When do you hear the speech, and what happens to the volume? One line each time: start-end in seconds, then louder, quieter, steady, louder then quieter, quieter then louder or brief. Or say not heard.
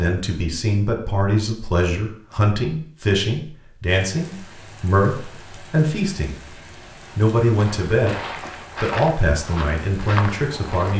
0.0-6.3 steady
7.2-8.2 brief
8.8-10.9 brief.